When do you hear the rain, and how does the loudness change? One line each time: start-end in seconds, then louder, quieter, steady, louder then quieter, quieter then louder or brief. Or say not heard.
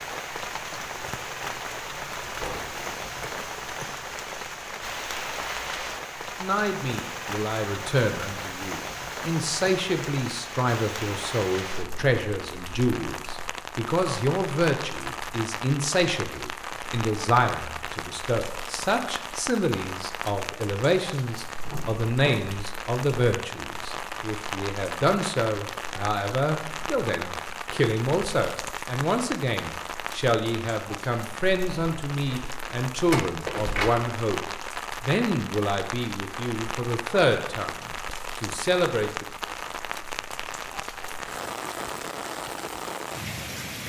0.0-43.8 steady.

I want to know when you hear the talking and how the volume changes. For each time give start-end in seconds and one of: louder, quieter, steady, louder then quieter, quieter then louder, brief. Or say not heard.
6.4-39.2 steady.